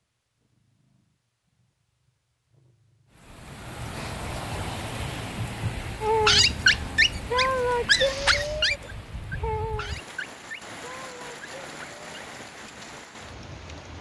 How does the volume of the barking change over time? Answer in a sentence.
The volume of the barking goes down.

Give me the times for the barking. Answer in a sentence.
You can hear the barking from 6.0 to 12.1 s.